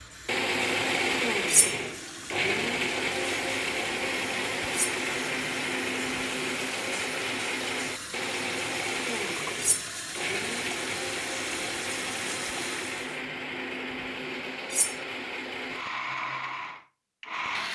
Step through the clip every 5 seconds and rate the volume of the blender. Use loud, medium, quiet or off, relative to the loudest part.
loud, loud, medium, medium.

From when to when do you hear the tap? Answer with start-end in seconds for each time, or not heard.
0.0-13.2.